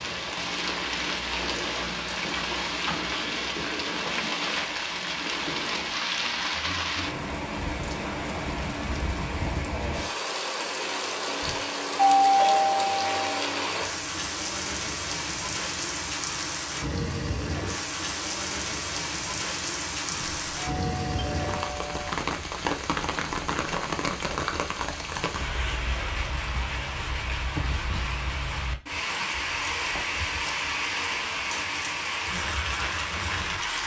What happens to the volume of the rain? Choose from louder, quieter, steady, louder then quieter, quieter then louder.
steady.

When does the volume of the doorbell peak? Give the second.
12 s.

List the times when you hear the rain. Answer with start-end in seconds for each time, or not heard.
0.0-33.8.